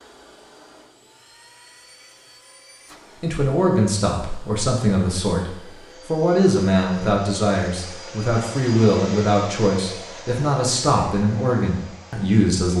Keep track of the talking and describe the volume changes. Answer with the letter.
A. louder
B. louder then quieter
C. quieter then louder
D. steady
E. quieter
D.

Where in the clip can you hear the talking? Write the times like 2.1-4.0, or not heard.
3.2-12.7.